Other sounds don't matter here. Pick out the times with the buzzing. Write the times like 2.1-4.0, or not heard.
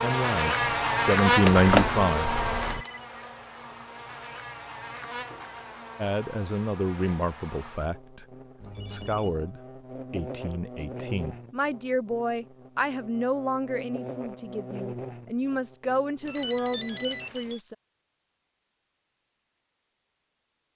0.0-17.3.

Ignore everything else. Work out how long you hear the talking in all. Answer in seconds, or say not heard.
14 s.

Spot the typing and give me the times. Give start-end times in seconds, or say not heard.
1.4-2.9.